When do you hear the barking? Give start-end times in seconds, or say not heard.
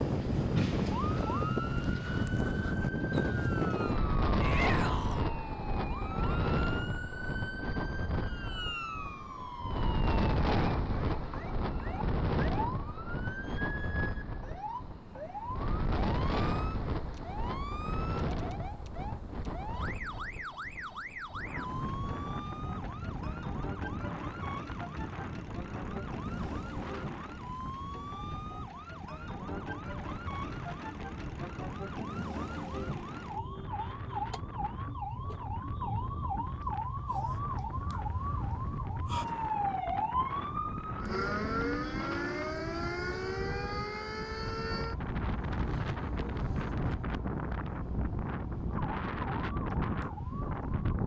not heard.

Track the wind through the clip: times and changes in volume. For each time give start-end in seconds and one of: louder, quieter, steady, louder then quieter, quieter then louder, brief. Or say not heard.
0.0-51.0 quieter then louder.